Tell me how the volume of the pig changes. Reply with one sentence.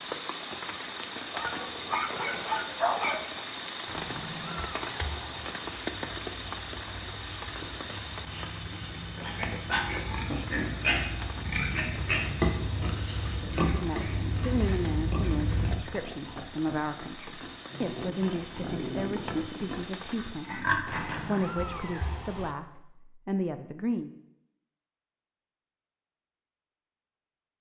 The volume of the pig goes down, then up.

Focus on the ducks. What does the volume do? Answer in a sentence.
The volume of the ducks goes up.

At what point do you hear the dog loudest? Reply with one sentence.
The volume of the dog peaks at 3 seconds.